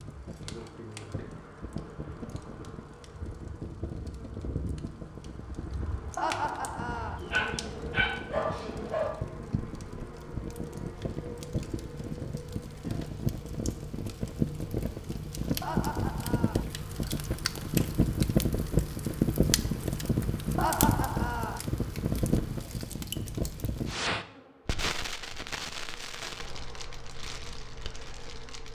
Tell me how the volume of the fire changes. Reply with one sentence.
The loudness of the fire goes up, then down.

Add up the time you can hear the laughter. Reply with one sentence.
The laughter can be heard for 3 seconds in total.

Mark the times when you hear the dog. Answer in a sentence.
The dog can be heard from 7.0 to 9.1 s.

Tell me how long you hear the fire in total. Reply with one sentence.
The fire can be heard for 29 seconds in total.